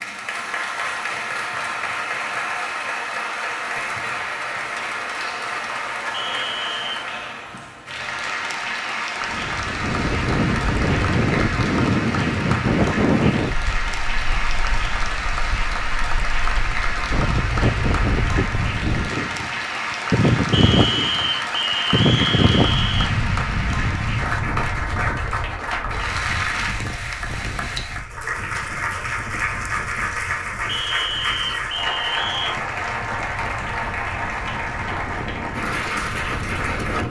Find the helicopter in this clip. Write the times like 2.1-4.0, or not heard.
not heard.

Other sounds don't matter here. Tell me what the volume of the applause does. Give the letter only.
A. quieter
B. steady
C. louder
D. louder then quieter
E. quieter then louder
B.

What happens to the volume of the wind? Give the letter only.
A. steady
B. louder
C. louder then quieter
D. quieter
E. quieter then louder
D.